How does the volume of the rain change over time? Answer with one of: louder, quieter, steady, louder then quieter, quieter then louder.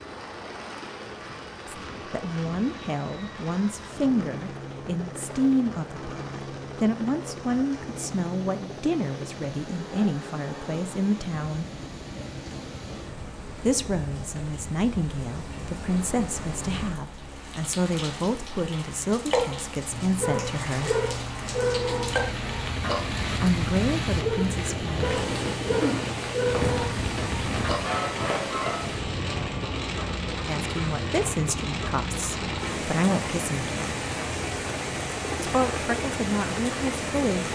louder.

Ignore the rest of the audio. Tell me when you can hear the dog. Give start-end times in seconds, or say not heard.
19.9-28.9.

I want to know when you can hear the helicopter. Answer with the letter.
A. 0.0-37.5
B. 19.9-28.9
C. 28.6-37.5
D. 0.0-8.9
A.